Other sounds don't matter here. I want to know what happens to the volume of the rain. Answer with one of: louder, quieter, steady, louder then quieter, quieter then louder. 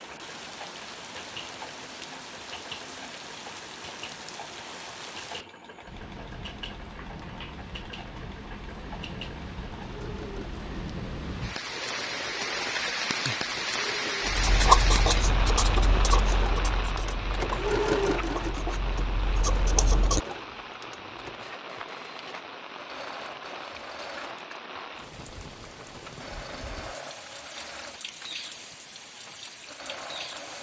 louder then quieter.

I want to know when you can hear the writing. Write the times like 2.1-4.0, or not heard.
14.2-20.2.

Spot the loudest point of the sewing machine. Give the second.
18 s.